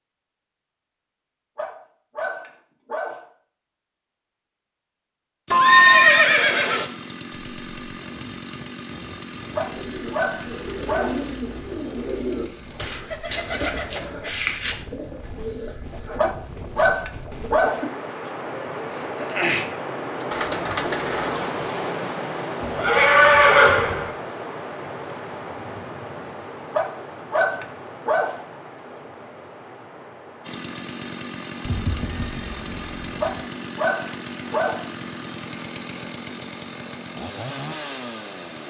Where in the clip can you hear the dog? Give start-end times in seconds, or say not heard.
1.6-3.2, 9.6-11.2, 16.1-17.9, 26.7-28.4, 33.2-34.9.